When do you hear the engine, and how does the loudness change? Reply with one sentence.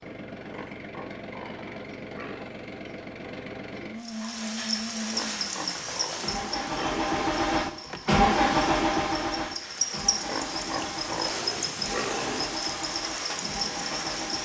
The engine can be heard from 0.0 to 14.4 s, getting louder then quieter.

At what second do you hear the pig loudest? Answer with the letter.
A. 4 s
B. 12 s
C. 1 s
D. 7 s
B.